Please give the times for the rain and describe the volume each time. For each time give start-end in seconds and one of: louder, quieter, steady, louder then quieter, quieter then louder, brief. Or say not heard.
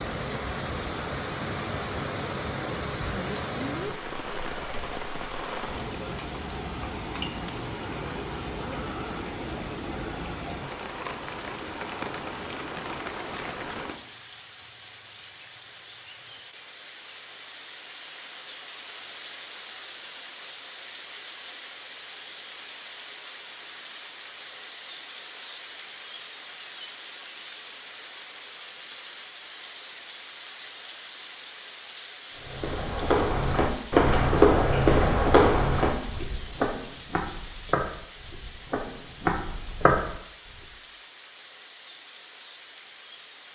0.0-43.4 quieter.